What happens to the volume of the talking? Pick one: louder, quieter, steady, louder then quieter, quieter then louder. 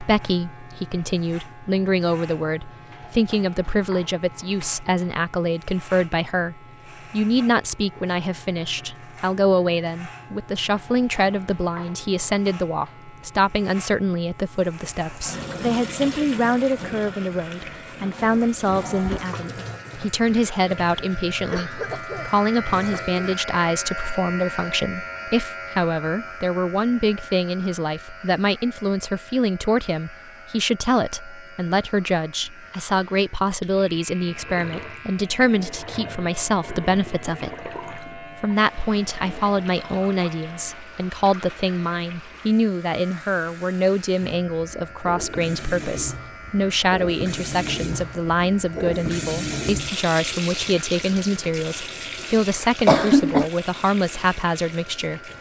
steady.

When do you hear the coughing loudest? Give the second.
53 s.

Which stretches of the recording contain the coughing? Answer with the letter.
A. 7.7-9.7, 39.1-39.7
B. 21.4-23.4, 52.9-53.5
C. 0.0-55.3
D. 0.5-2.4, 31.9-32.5
B.